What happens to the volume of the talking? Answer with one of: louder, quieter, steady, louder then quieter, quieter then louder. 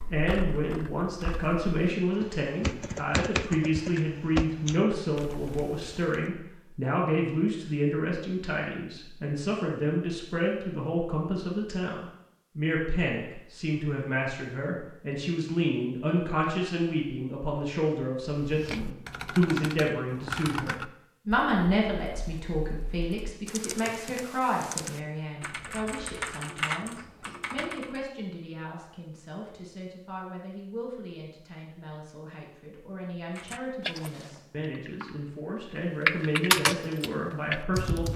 quieter.